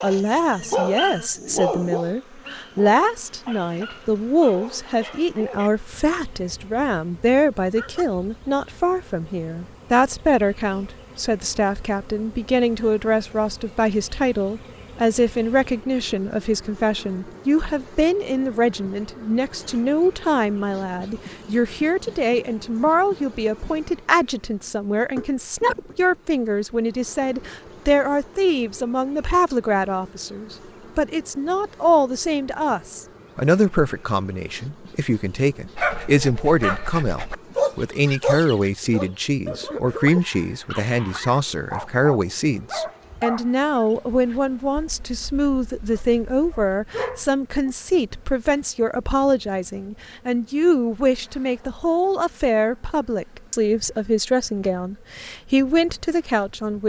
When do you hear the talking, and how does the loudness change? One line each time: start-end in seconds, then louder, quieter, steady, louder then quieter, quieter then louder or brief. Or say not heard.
0.0-56.8 steady.